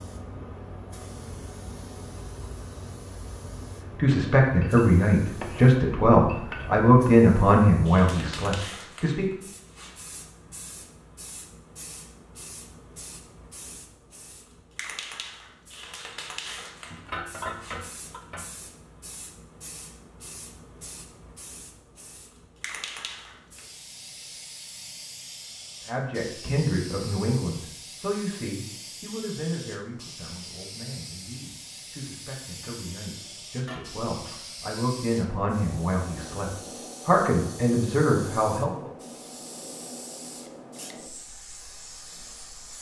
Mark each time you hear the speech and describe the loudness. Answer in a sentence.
The speech can be heard from 4.0 to 9.3 s, getting quieter; and from 25.9 to 38.9 s, getting quieter then louder.